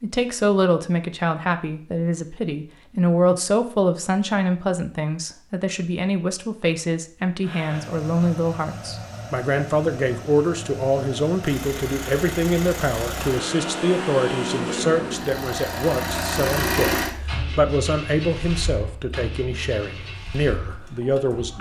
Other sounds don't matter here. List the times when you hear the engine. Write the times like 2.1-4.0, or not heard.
7.4-21.5.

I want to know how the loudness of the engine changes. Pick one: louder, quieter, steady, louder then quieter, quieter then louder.
louder then quieter.